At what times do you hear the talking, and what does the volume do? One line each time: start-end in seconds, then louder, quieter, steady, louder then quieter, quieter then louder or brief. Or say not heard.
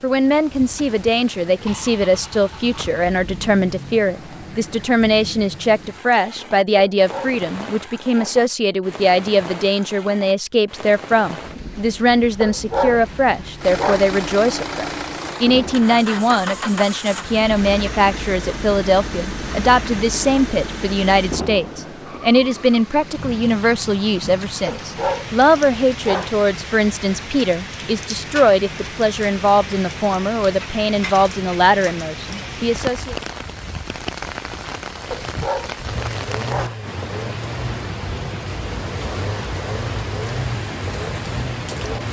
0.0-33.1 steady.